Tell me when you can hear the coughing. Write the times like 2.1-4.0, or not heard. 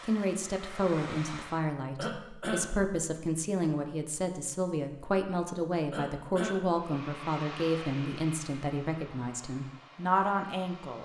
1.9-2.7, 5.9-6.7.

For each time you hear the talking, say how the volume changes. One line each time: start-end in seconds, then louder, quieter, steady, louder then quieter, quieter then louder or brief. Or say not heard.
0.0-11.0 steady.